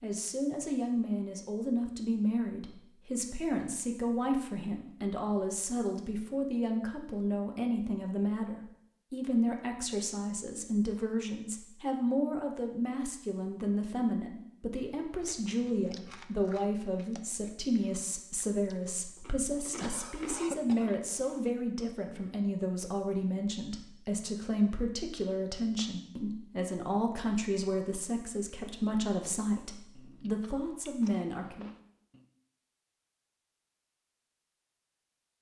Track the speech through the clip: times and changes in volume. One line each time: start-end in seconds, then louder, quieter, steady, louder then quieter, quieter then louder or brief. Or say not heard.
0.0-31.7 steady.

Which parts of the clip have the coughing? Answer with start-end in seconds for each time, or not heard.
19.8-21.4.